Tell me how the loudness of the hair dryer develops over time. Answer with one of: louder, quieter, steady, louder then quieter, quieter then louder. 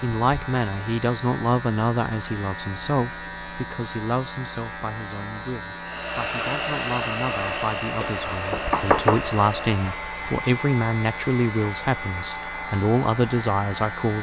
quieter.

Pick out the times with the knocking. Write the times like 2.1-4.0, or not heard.
8.0-9.2.